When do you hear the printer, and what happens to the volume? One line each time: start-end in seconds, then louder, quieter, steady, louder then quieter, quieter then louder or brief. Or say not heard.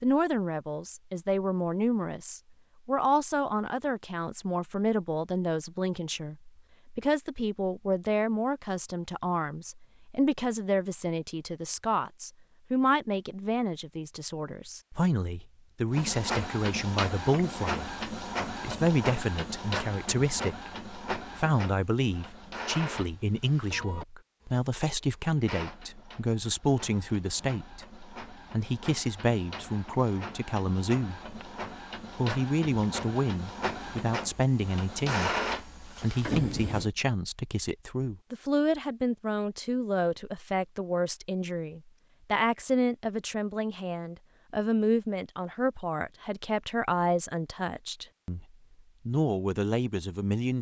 15.9-36.9 quieter then louder.